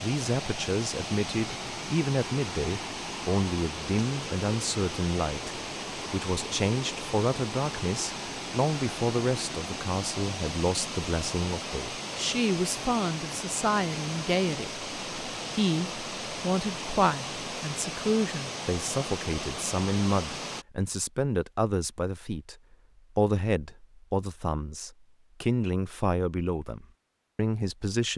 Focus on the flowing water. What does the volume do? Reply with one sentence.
The loudness of the flowing water stays about the same.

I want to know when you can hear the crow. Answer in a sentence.
You can't hear the crow here.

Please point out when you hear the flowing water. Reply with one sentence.
You can hear the flowing water from 0.0 to 20.6 s.